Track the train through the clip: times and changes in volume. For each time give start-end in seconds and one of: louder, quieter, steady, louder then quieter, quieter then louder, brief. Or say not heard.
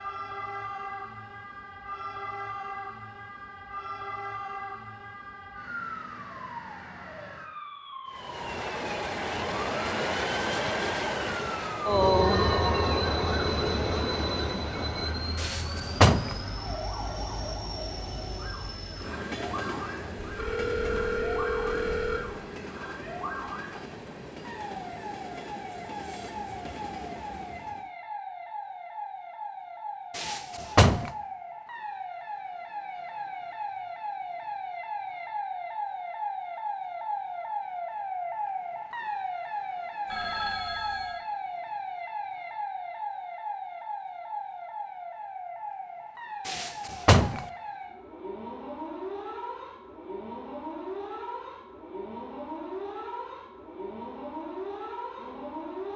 8.1-27.9 quieter.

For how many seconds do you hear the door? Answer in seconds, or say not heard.
3 s.